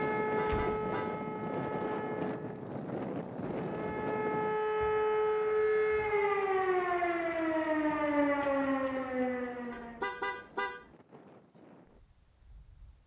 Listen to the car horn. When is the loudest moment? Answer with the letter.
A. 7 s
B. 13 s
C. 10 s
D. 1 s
C.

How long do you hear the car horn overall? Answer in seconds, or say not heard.
2 s.